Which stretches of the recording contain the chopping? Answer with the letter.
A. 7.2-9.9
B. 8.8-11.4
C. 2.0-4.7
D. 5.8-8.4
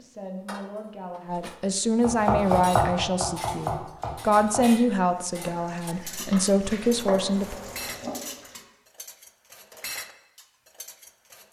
C.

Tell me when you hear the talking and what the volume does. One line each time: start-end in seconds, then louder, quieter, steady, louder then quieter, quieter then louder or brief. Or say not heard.
0.0-7.5 louder.